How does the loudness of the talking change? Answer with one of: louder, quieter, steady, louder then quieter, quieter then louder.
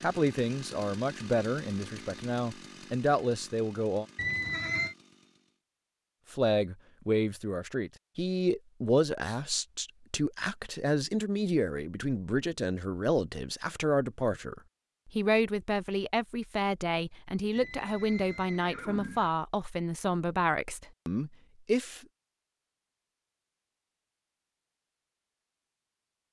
steady.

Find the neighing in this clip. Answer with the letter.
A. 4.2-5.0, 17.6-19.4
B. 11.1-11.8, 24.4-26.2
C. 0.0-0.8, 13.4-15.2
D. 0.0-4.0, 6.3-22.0
A.